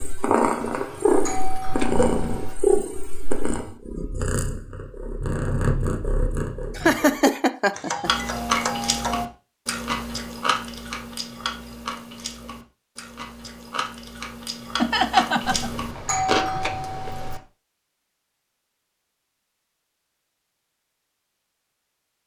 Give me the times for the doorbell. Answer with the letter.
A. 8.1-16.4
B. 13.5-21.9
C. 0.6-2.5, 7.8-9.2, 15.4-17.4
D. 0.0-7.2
C.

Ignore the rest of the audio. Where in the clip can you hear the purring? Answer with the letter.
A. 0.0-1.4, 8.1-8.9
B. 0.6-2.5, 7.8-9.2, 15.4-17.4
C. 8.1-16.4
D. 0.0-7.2
D.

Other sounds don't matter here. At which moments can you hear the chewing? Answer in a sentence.
You can hear the chewing from 8.1 to 16.4 s.